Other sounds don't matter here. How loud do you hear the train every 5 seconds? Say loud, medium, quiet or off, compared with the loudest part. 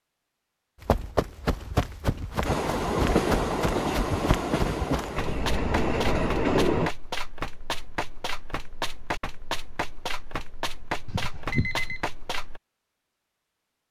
loud, loud, off.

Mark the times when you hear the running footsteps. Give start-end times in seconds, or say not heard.
0.8-12.6.